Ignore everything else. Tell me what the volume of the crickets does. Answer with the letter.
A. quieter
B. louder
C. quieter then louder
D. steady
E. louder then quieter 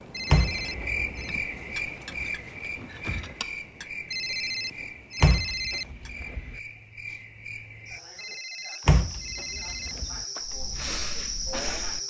C.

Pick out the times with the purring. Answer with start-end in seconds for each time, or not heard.
not heard.